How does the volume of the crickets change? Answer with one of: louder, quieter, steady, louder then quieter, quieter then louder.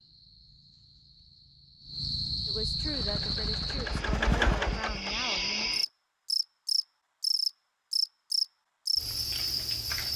louder.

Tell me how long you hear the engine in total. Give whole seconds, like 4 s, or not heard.
3 s.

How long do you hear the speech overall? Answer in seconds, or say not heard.
3 s.